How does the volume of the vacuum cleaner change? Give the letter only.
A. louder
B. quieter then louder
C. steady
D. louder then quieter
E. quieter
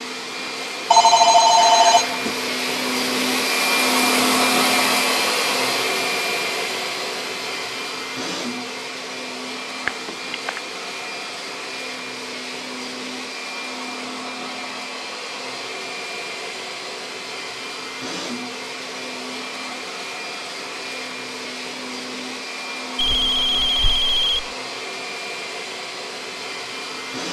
E.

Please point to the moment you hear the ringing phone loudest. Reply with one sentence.
The volume of the ringing phone peaks at 1 second.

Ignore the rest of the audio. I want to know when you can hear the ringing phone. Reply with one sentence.
The ringing phone can be heard from 0.9 to 2.4 s, from 9.8 to 10.6 s and from 22.9 to 24.5 s.